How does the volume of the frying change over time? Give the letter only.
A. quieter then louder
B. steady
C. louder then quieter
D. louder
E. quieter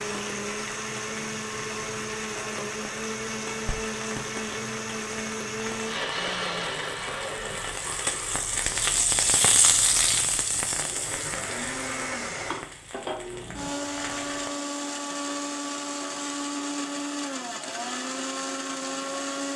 C.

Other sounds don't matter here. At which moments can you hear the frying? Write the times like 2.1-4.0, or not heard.
0.0-14.5.